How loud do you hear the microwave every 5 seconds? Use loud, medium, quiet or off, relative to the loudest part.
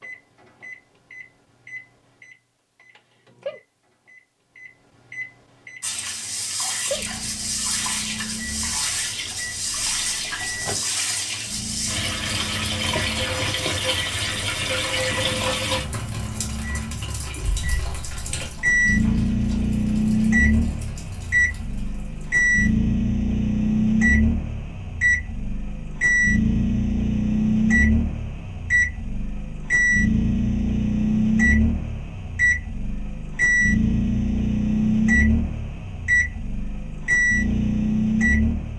quiet, quiet, quiet, loud, loud, loud, loud, loud.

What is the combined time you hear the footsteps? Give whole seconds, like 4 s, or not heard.
not heard.